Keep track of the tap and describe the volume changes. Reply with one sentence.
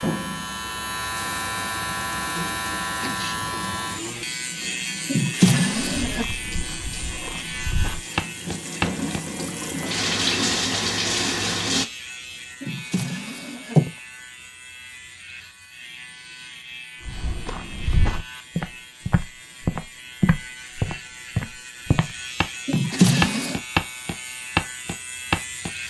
The volume of the tap goes up.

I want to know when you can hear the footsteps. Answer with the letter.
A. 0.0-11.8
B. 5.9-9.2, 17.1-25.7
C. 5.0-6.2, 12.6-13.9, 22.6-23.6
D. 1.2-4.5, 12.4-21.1
B.